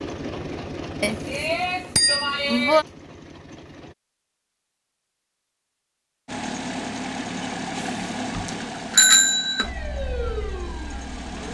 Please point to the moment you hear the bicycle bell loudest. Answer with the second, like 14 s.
9 s.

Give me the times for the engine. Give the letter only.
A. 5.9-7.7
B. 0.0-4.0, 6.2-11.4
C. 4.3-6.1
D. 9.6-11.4
B.